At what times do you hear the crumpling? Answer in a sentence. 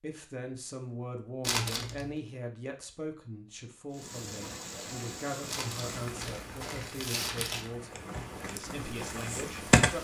The crumpling can be heard from 1.4 to 2.1 s and from 5.5 to 7.7 s.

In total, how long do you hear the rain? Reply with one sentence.
You can hear the rain for 6 seconds altogether.